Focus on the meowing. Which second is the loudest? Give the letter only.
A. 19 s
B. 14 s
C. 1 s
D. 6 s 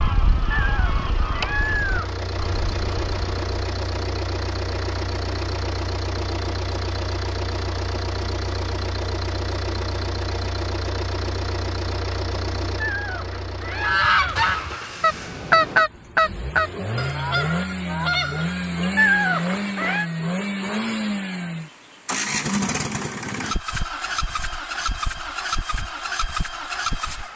A.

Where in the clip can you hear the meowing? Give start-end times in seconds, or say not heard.
0.5-2.1, 12.8-14.4, 18.9-20.1.